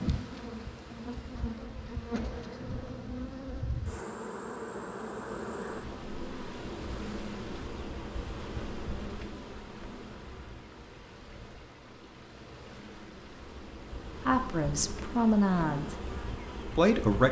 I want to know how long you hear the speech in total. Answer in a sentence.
The speech can be heard for 2 seconds in total.